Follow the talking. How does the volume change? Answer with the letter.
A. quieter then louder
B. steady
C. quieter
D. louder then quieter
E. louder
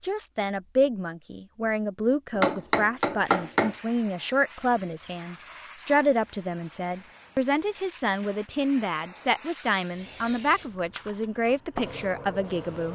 B.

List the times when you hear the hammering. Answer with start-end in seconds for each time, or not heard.
2.4-3.7.